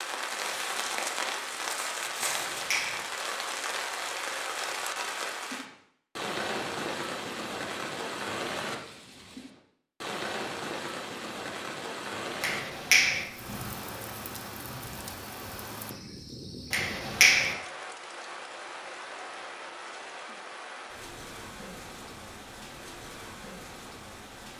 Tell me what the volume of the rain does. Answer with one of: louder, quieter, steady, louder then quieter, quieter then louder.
quieter.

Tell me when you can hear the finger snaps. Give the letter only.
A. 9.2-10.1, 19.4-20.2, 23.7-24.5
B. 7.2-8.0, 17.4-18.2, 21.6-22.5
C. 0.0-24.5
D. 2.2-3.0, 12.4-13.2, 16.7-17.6
D.